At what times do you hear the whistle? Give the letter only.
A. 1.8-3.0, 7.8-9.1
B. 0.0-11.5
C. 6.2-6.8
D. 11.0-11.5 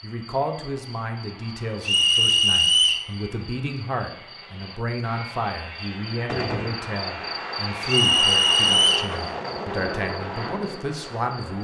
A.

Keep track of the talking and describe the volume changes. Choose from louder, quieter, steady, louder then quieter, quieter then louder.
steady.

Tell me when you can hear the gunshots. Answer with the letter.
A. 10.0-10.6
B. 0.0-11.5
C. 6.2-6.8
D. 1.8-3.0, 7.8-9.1
C.